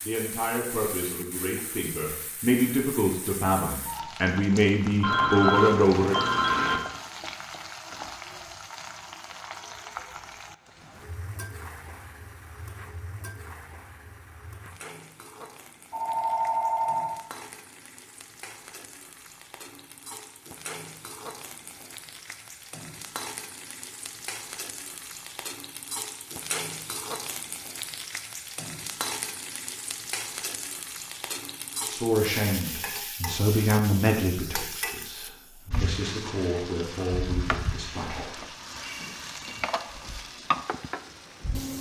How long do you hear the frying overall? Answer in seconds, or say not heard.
42 s.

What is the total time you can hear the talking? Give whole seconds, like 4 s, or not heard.
13 s.